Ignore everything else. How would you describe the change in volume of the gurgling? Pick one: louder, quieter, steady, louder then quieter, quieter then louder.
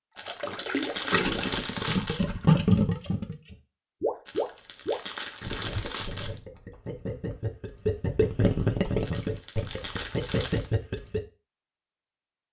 quieter then louder.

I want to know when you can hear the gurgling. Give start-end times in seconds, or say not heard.
0.2-11.2.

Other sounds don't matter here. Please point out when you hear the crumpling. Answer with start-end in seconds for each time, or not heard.
0.1-2.2, 4.2-6.4, 9.1-10.7.